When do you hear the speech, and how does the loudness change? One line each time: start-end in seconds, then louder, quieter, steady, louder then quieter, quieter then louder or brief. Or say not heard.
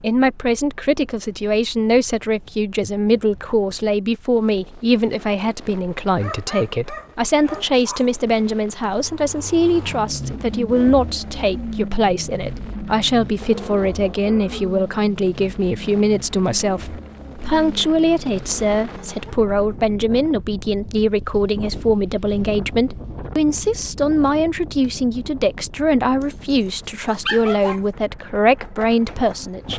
0.0-29.7 steady.